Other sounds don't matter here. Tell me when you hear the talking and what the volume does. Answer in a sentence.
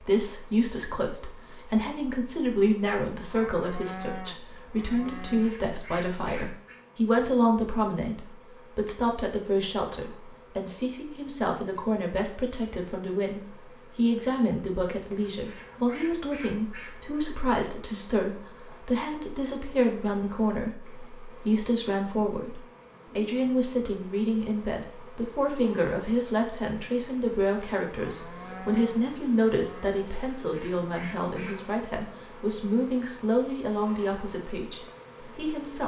The talking can be heard from 0.0 to 35.8 s, at a steady volume.